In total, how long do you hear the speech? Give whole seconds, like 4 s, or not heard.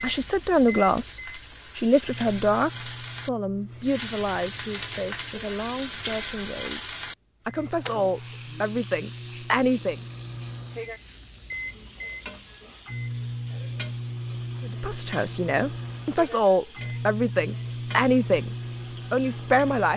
15 s.